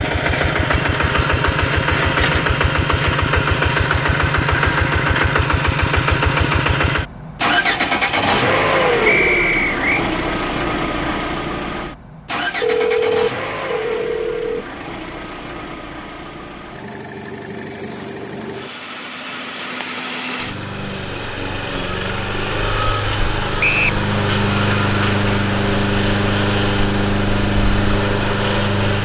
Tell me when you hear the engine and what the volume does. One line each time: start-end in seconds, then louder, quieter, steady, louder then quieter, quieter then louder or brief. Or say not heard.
0.0-28.9 quieter then louder.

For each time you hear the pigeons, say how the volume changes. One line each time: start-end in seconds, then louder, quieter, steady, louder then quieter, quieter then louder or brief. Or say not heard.
not heard.